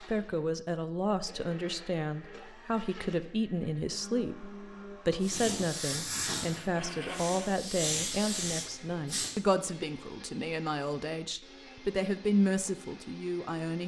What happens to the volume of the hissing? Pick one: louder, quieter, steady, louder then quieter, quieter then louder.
quieter then louder.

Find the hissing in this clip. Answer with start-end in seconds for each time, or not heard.
5.2-9.3.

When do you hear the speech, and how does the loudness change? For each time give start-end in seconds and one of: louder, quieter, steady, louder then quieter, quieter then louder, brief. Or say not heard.
0.0-13.8 steady.